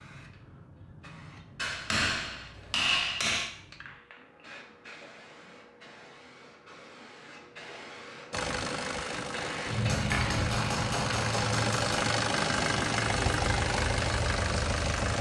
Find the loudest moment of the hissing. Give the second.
10 s.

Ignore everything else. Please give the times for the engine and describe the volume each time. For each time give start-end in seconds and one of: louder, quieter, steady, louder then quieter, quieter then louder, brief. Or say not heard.
8.3-15.1 louder.